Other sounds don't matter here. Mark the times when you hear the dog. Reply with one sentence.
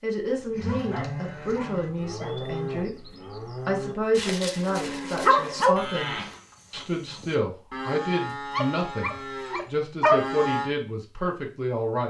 You can hear the dog from 0.2 to 2.4 s, from 4.2 to 5.8 s and from 8.5 to 10.2 s.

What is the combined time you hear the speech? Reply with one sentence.
The speech can be heard for 12 seconds in total.